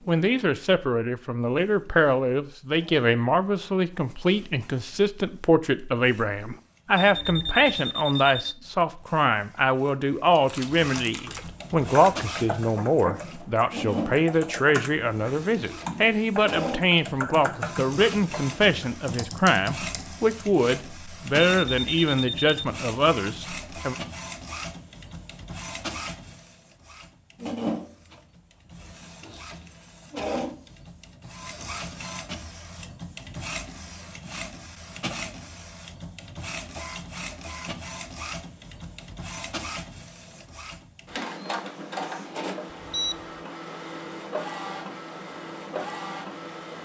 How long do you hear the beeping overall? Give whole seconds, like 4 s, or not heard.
3 s.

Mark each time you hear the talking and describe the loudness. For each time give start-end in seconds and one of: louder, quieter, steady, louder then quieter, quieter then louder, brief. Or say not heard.
0.1-23.9 steady.